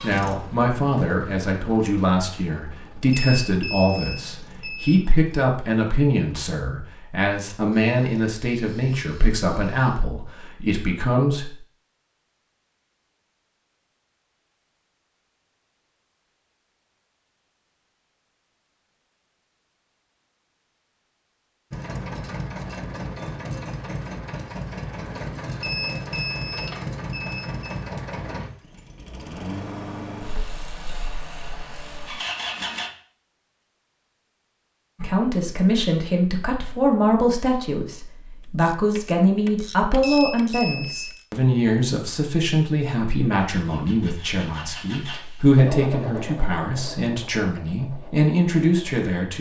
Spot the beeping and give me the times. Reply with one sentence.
You can hear the beeping from 3.1 to 5.0 s, from 25.6 to 27.8 s and from 40.0 to 41.1 s.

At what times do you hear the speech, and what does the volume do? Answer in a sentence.
The speech can be heard from 0.0 to 11.6 s, at a steady volume; and from 35.0 to 49.3 s, at a steady volume.